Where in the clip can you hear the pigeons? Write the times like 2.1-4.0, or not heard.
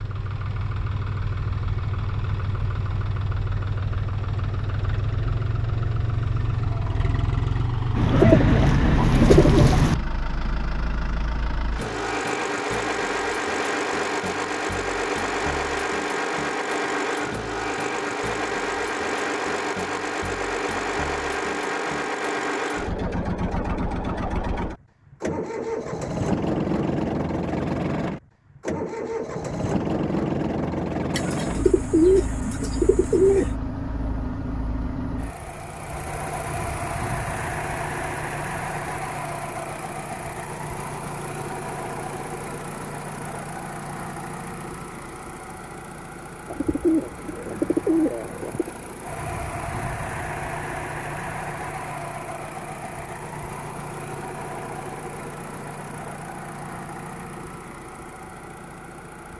8.0-9.9, 31.1-33.5, 46.5-48.7.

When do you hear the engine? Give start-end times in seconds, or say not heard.
0.0-59.3.